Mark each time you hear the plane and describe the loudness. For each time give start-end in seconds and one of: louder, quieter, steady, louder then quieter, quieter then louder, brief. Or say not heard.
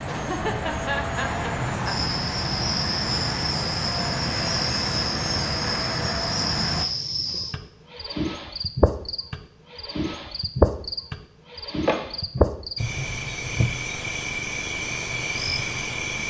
0.0-6.8 steady.